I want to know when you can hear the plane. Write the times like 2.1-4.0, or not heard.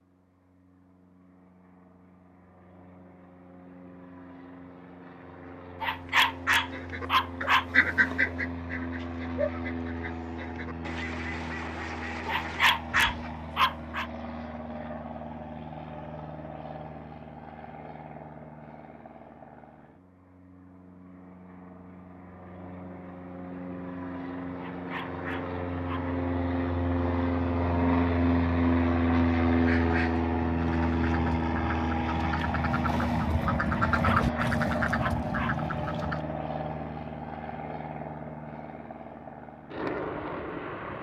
0.1-40.9.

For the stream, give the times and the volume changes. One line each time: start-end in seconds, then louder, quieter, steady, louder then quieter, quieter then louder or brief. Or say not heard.
not heard.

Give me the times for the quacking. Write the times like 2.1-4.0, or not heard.
6.7-13.3, 29.6-36.2.